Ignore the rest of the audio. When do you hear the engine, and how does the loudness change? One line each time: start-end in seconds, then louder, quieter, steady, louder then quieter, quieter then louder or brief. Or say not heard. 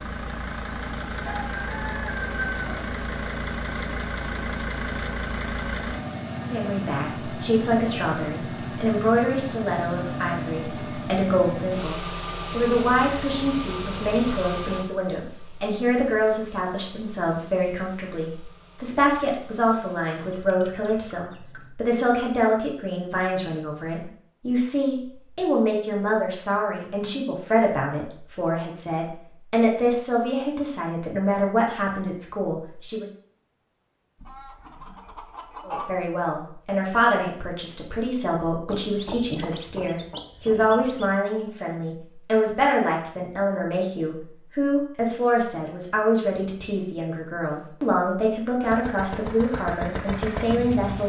0.0-20.4 quieter
48.6-51.0 brief.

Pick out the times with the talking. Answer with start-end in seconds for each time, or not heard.
6.5-33.0, 35.6-51.0.